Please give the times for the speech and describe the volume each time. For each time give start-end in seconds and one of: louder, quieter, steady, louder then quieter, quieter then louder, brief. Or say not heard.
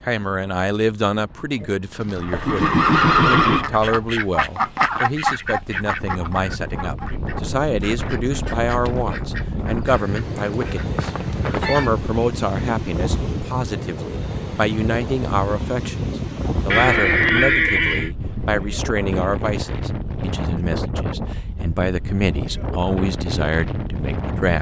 0.0-24.5 steady.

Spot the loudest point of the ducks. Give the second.
5 s.